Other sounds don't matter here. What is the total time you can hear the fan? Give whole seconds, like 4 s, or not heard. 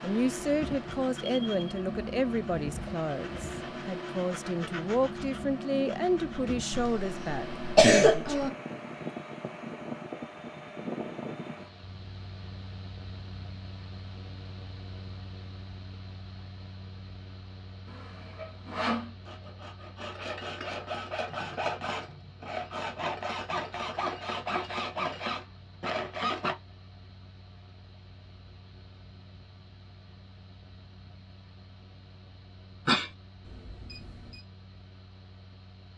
36 s.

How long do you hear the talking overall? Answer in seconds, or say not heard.
8 s.